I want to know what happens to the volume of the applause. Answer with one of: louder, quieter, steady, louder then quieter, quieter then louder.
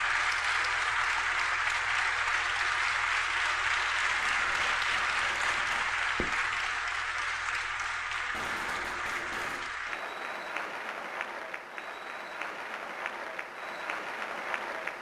quieter.